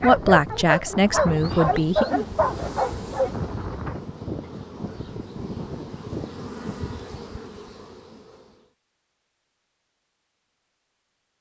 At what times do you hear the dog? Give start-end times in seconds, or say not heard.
0.0-3.4.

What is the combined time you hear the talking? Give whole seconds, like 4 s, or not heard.
2 s.